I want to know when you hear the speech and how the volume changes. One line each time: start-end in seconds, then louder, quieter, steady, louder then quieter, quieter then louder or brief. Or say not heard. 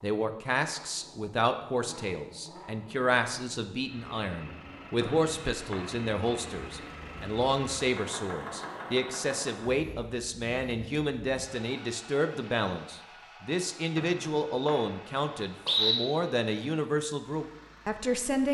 0.0-18.4 steady.